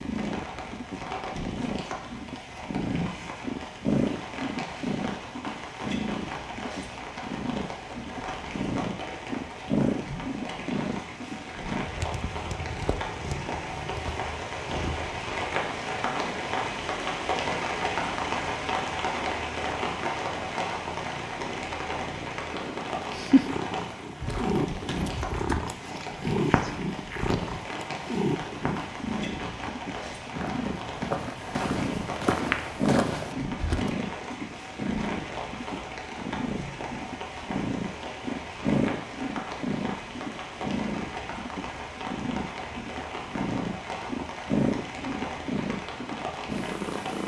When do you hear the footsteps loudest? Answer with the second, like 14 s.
32 s.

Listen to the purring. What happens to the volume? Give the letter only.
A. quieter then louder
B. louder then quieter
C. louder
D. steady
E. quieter
D.